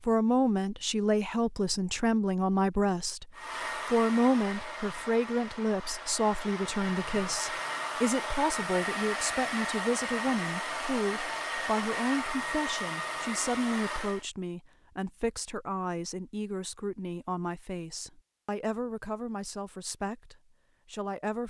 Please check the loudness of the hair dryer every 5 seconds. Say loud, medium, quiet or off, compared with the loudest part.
loud, loud, loud, off, off.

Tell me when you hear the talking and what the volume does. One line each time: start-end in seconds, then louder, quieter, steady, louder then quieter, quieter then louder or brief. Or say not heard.
0.1-21.4 quieter.